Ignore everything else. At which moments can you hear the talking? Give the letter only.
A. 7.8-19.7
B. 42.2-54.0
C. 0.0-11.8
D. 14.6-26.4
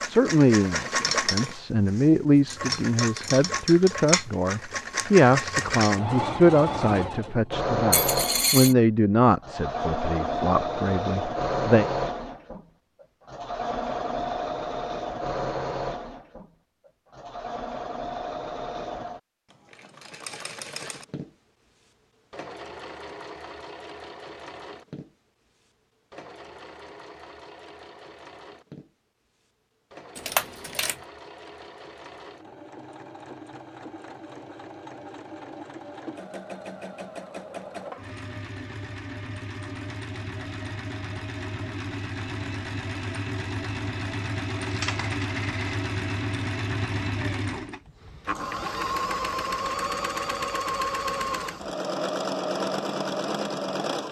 C.